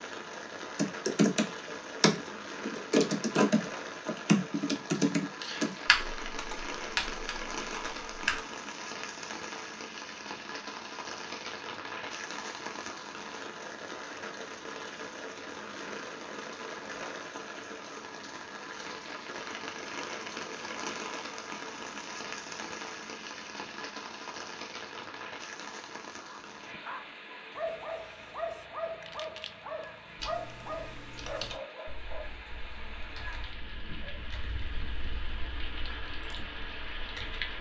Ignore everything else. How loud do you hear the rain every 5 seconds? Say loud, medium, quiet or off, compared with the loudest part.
loud, loud, loud, loud, loud, medium, medium, loud.